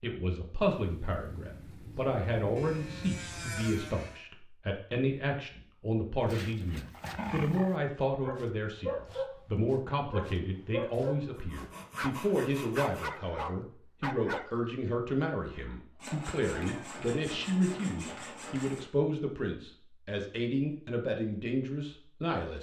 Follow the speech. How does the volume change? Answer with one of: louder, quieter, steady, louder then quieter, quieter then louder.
steady.